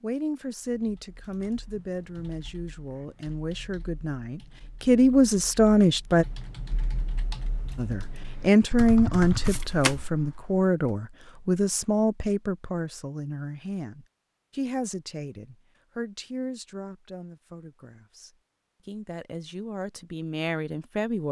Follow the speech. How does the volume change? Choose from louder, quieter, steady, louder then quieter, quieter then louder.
louder then quieter.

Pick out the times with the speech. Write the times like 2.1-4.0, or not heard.
0.0-6.2, 7.8-21.2.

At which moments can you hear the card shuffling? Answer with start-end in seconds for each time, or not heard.
9.4-10.1.